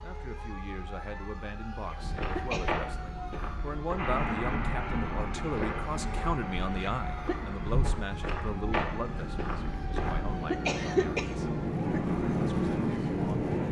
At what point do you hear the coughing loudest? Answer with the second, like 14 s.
11 s.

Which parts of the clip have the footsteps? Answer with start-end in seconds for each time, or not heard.
1.9-10.4.